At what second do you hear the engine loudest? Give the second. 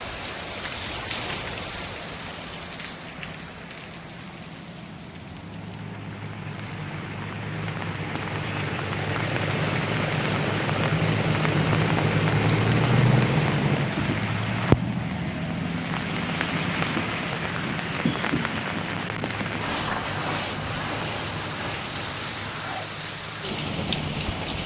13 s.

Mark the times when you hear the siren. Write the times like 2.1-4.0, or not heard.
not heard.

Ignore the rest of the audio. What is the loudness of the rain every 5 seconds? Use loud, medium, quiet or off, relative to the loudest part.
medium, medium, loud, loud, loud.